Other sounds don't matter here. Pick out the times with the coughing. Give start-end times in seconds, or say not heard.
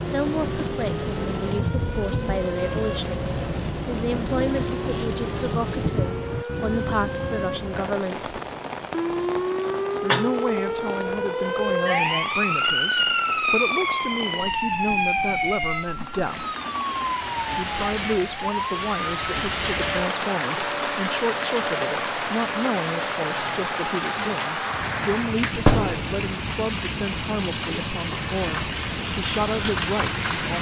9.2-10.3.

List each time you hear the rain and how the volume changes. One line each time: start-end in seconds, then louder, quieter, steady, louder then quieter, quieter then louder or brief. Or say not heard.
0.0-30.5 quieter then louder.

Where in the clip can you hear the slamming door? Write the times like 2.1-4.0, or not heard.
25.6-26.2.